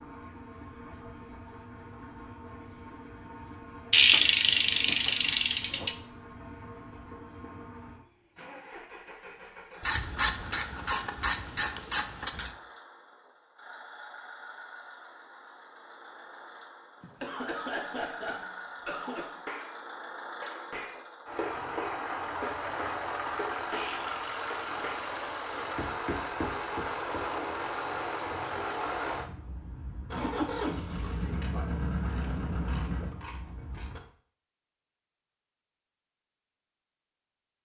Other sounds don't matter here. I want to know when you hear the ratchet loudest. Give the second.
4 s.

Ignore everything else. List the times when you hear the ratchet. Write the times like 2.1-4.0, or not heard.
3.9-6.0, 9.8-12.5, 23.7-25.7, 31.4-34.0.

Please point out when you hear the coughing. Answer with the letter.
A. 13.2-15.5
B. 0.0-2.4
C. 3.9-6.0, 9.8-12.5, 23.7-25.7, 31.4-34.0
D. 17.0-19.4
D.